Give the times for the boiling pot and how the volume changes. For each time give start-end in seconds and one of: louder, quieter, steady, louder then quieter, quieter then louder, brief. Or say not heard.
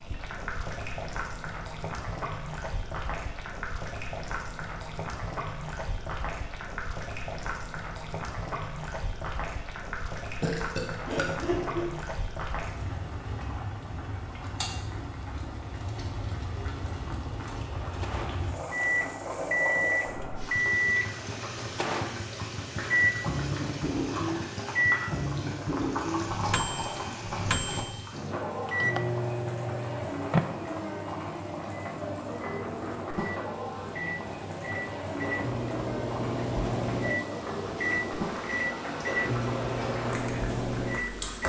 0.0-41.4 steady.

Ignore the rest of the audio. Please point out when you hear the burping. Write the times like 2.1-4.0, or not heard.
10.4-11.9.